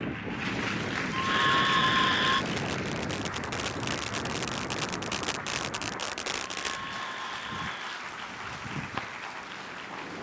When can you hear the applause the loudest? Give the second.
1 s.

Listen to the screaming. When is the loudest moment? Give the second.
2 s.